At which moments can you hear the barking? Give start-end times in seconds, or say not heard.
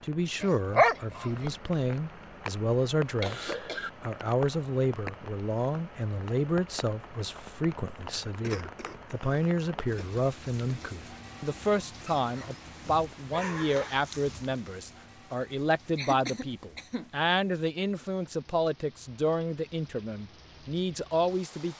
0.4-1.5, 12.2-14.6.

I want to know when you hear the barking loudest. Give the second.
1 s.